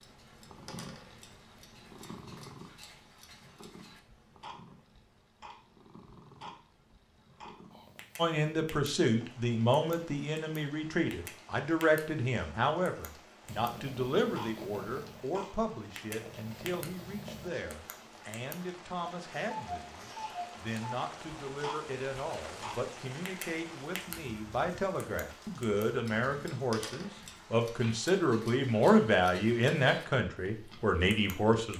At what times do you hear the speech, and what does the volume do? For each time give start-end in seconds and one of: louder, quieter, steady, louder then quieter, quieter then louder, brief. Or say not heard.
8.2-31.7 quieter then louder.